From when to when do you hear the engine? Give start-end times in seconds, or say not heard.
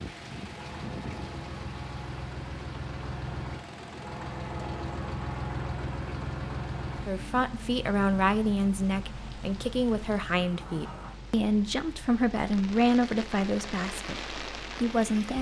0.0-15.3.